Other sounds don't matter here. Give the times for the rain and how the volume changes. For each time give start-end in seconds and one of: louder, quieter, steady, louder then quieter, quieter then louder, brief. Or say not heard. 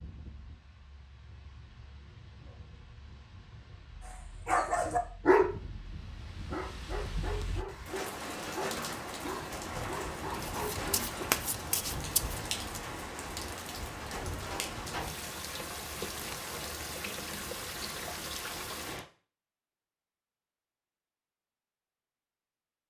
0.0-19.1 louder.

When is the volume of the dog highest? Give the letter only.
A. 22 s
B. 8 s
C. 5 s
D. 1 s
C.